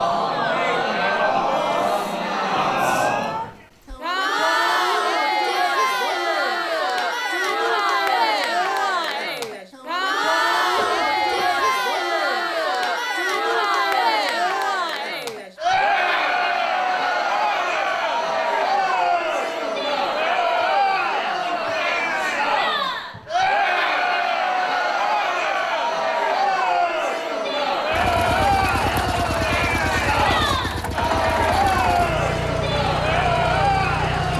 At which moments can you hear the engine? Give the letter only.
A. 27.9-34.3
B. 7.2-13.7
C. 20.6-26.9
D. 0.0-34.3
A.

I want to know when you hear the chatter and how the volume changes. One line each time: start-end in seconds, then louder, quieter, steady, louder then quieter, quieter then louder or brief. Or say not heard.
0.0-34.3 steady.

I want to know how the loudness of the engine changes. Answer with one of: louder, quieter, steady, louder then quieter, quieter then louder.
steady.